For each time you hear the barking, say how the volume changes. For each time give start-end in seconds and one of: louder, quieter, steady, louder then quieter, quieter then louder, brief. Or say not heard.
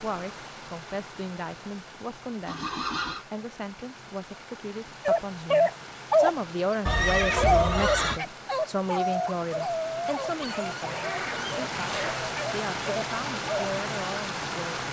5.0-6.3 brief
7.2-13.7 quieter.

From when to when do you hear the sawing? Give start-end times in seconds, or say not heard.
not heard.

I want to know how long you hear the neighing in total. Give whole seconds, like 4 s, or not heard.
3 s.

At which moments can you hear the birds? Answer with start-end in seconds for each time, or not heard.
not heard.